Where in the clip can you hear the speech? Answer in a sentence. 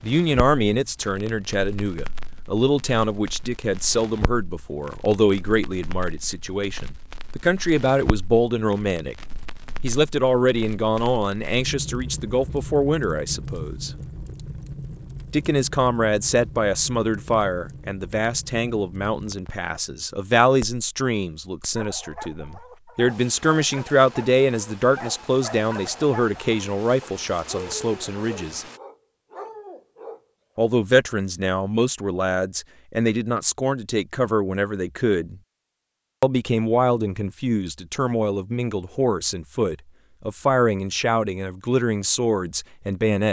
You can hear the speech from 0.0 to 9.2 s, from 9.8 to 13.9 s, from 15.3 to 28.6 s, from 30.6 to 35.4 s and from 36.2 to 43.2 s.